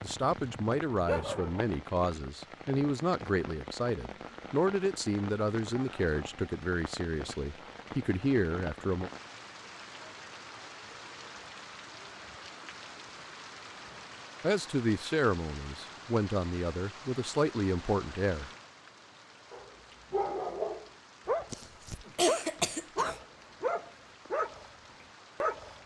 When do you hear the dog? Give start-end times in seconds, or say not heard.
0.0-1.7, 19.5-25.8.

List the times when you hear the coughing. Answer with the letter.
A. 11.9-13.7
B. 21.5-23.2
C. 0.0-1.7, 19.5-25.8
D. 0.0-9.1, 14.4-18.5
B.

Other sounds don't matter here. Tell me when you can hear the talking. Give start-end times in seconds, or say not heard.
0.0-9.1, 14.4-18.5.